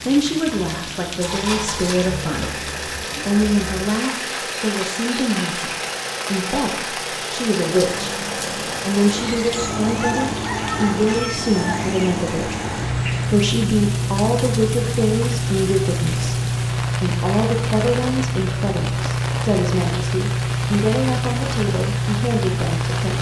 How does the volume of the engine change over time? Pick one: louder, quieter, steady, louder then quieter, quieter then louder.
louder.